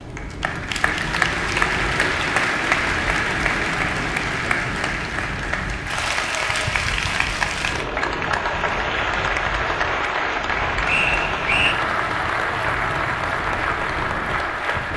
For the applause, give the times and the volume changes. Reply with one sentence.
You can hear the applause from 0.0 to 14.9 s, at a steady volume.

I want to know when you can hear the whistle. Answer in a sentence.
The whistle can be heard from 10.8 to 11.8 s.